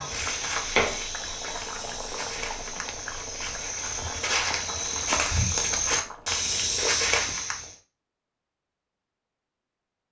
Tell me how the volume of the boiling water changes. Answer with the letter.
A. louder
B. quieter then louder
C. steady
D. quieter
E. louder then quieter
D.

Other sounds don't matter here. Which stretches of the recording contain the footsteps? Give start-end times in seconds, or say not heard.
0.0-7.8.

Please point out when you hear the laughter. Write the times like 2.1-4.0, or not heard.
not heard.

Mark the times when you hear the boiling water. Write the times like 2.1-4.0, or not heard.
0.0-6.5.